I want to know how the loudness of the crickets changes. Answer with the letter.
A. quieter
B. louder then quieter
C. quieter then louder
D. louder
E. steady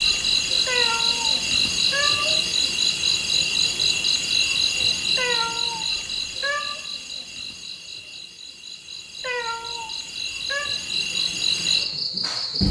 C.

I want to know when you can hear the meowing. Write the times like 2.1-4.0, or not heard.
0.7-2.5, 5.2-6.8, 9.2-10.7.